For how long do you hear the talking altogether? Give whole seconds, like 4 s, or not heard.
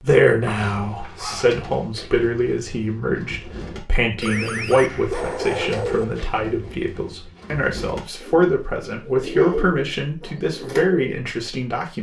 12 s.